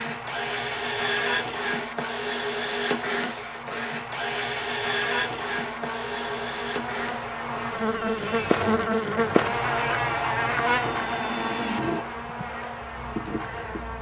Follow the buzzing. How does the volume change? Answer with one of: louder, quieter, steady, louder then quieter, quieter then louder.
louder then quieter.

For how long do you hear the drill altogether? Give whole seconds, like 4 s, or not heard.
14 s.